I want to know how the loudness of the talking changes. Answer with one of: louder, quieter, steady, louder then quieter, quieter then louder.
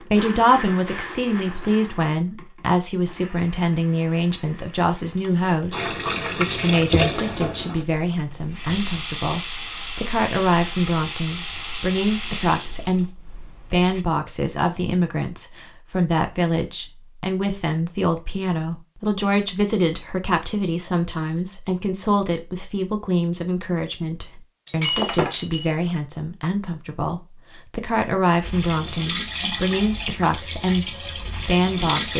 steady.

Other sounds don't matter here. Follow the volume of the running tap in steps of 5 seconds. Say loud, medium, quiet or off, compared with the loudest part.
off, loud, loud, off, off, loud, loud.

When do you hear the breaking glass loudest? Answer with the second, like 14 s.
25 s.